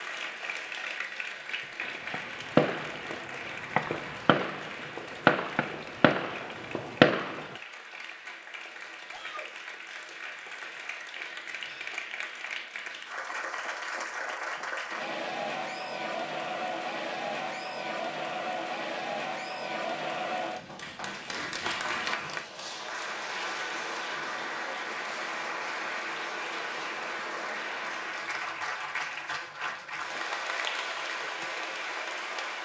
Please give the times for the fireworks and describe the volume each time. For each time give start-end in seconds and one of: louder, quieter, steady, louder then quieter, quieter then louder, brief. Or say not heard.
1.8-7.5 quieter then louder.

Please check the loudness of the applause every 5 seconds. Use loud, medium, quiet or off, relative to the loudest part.
medium, medium, loud, loud, loud, loud, loud.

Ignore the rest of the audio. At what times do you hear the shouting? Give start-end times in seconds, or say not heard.
9.1-9.5.